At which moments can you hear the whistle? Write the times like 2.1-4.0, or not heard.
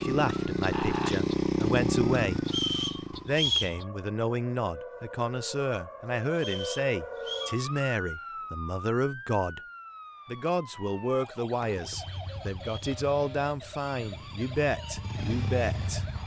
2.5-3.8, 6.3-7.5, 12.0-13.0.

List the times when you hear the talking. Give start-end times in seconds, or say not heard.
0.0-2.4, 3.2-9.6, 10.2-16.1.